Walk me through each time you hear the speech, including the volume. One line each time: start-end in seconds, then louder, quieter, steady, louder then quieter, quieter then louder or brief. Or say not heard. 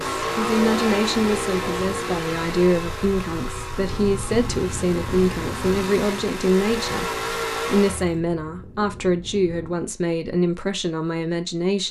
0.1-11.8 steady.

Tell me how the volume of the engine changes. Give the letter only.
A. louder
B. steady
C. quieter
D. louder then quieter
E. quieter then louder
E.